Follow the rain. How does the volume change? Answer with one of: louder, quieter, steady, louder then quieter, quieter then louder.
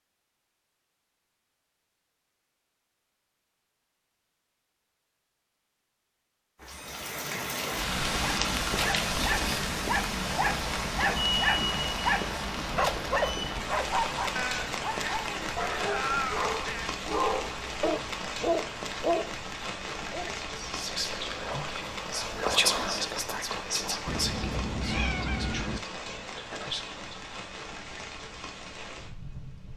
quieter.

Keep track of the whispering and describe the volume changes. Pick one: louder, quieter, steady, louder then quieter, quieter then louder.
louder then quieter.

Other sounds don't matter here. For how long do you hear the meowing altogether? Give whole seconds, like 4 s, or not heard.
5 s.